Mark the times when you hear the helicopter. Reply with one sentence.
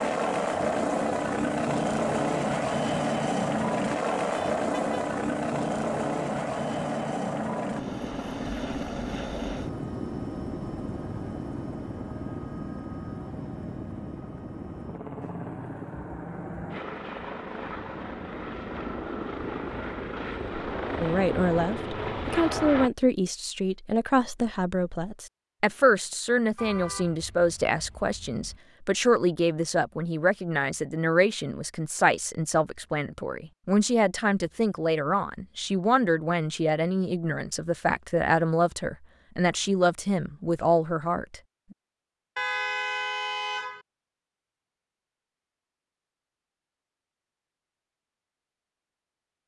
You can hear the helicopter from 0.0 to 22.9 s.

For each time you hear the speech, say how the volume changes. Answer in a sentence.
You can hear the speech from 21.0 to 41.4 s, at a steady volume.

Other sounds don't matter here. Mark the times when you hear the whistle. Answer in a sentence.
The whistle can't be heard in this clip.